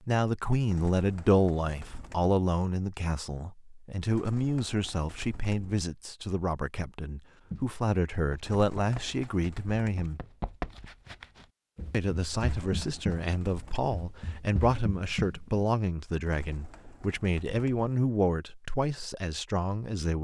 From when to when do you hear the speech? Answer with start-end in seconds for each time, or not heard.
0.1-10.2, 11.9-20.1.